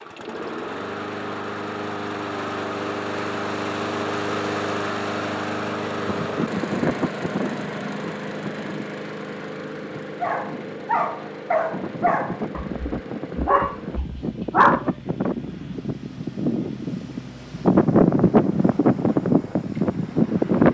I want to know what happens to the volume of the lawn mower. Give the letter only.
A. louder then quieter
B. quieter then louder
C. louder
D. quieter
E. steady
D.